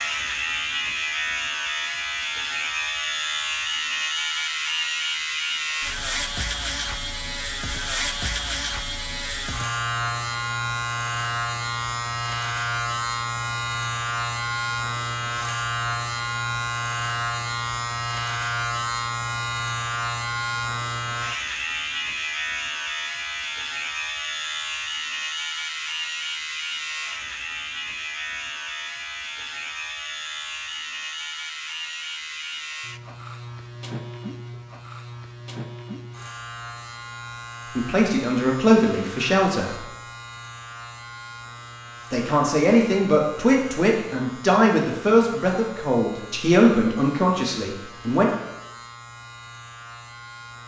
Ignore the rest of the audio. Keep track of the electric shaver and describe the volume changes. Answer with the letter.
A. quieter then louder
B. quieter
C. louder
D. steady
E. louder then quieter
B.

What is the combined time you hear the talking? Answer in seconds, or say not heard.
8 s.